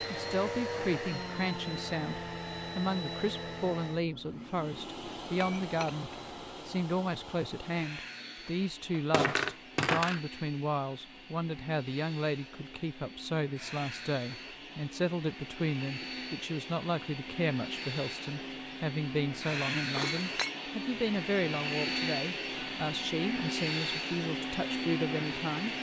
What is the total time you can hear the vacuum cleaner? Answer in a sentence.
You can hear the vacuum cleaner for 26 seconds altogether.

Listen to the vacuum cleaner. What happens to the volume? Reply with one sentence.
The volume of the vacuum cleaner goes down, then up.